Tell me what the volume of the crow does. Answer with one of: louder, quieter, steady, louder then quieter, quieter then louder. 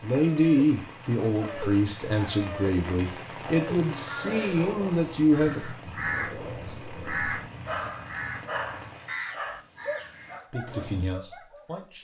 louder then quieter.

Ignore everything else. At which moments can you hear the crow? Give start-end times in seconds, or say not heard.
3.6-11.1.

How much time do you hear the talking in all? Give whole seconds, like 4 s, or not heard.
7 s.